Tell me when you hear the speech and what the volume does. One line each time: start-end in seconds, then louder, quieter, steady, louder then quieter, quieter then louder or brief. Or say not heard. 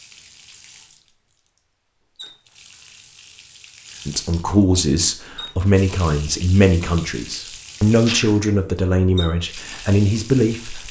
4.0-10.8 steady.